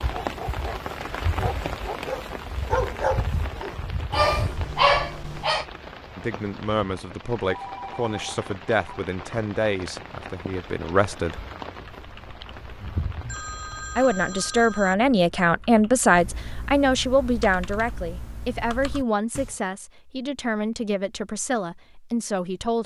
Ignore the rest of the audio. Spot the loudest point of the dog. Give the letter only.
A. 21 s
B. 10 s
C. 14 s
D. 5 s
D.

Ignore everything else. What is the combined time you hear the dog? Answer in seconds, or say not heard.
6 s.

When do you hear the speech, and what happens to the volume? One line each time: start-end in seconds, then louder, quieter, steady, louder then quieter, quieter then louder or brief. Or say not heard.
6.2-11.4 steady
13.9-22.8 quieter.